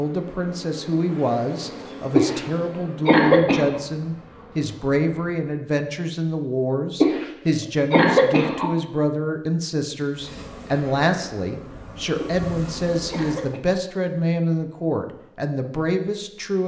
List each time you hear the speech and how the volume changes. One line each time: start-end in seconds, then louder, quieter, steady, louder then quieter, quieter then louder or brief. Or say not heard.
0.0-16.6 steady.